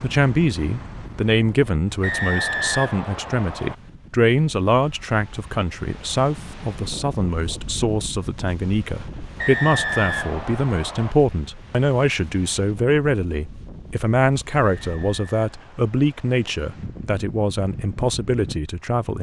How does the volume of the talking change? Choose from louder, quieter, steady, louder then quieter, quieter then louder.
steady.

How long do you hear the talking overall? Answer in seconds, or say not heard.
19 s.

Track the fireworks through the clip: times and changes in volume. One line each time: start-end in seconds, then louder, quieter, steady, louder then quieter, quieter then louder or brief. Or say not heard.
not heard.